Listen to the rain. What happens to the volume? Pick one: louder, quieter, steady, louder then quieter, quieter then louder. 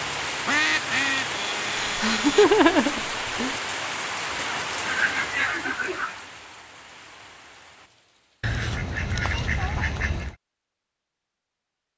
quieter.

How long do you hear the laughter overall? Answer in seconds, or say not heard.
2 s.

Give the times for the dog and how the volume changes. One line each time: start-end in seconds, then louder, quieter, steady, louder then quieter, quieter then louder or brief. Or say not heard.
not heard.